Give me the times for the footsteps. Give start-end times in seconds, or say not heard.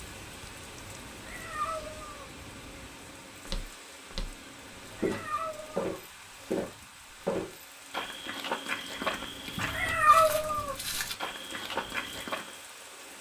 3.5-12.6.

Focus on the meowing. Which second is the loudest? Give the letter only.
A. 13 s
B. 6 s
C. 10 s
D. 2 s
C.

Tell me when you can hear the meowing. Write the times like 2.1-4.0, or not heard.
1.1-2.2, 5.0-6.5, 9.6-10.8.